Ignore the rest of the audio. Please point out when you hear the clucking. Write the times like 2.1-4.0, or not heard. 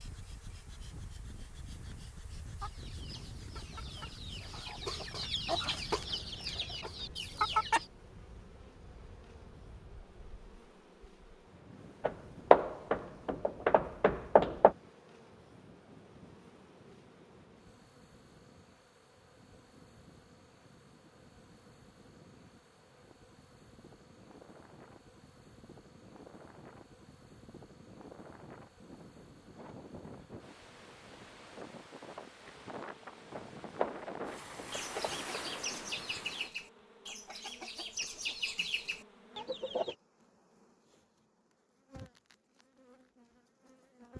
2.6-7.8, 34.7-40.0.